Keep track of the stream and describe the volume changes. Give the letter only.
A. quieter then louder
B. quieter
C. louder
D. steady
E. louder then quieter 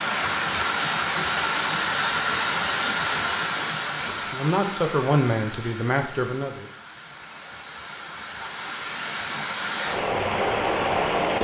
A.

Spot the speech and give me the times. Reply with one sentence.
The speech can be heard from 4.0 to 6.7 s.